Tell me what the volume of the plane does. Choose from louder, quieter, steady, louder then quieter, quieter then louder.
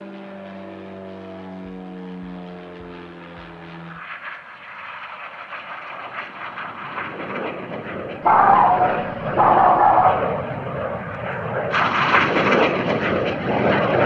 louder.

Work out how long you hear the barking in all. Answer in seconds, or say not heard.
2 s.